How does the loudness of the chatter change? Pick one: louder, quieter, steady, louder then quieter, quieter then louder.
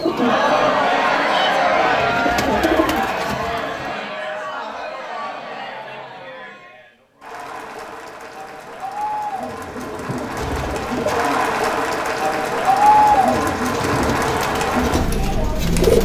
quieter then louder.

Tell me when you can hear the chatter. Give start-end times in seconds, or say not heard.
0.1-15.9.